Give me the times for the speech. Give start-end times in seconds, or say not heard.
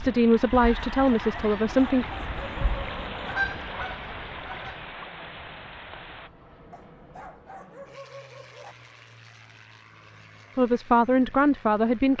0.0-2.0, 10.6-12.1.